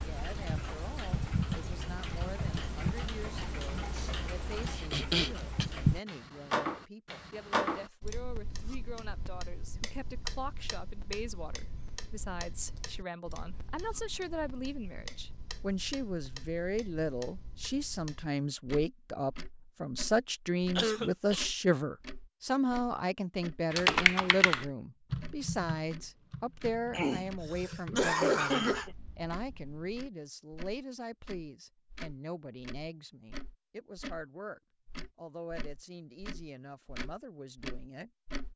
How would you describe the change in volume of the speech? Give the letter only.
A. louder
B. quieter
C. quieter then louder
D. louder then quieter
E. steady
D.